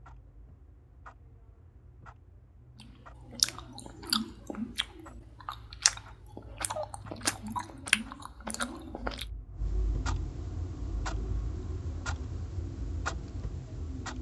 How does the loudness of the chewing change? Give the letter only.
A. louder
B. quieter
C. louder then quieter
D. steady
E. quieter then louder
E.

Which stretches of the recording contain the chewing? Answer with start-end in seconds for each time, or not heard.
2.8-9.2.